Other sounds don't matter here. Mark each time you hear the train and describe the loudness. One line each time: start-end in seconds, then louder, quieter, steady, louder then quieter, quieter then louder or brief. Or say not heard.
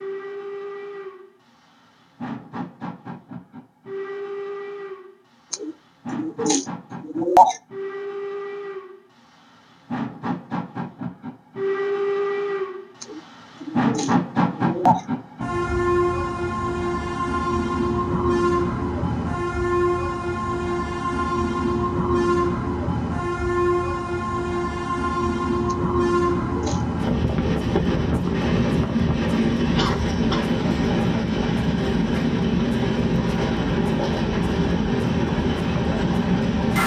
0.0-36.8 louder.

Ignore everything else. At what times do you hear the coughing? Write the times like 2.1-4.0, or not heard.
29.8-30.5.